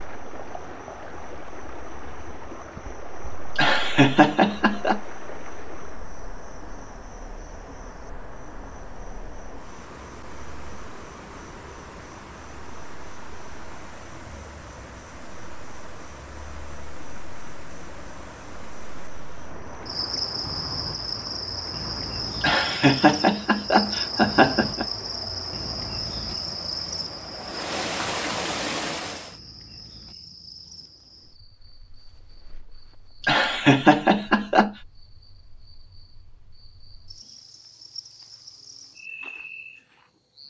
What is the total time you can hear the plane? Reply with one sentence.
The plane can't be heard in this clip.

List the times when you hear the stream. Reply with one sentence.
You can hear the stream from 0.0 to 29.4 s.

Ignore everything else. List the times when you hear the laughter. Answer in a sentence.
The laughter can be heard from 3.5 to 5.0 s, from 22.4 to 24.9 s and from 33.2 to 34.8 s.